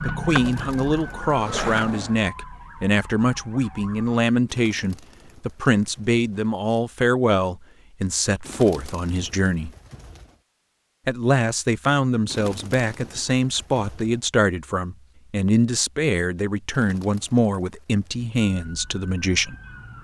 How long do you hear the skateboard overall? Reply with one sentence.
The skateboard can be heard for 2 seconds in total.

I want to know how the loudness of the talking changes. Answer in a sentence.
The loudness of the talking stays about the same.